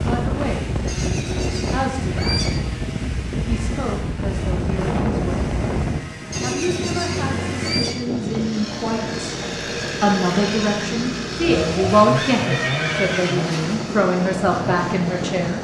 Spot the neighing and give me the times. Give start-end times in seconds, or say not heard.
0.8-2.6, 6.3-8.0, 12.0-13.8.